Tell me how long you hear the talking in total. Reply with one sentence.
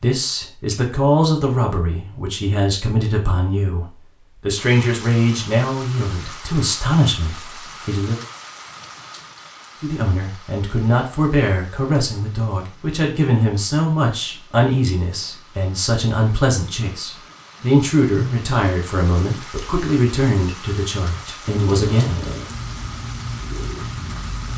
The talking can be heard for 21 seconds in total.